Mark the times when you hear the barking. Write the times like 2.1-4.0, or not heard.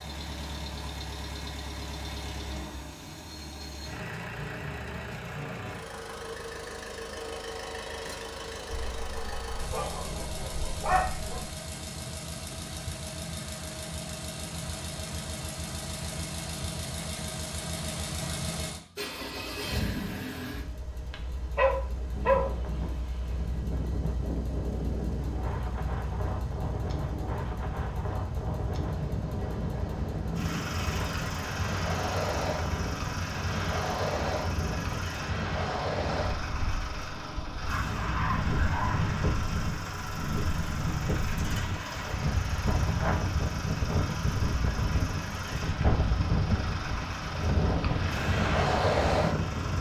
8.8-11.5, 21.1-22.5, 37.6-39.4.